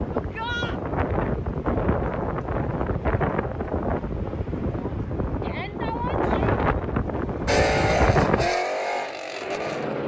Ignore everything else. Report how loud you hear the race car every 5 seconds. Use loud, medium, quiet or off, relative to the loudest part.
off, loud.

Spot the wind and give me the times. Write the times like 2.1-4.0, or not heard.
0.0-8.5.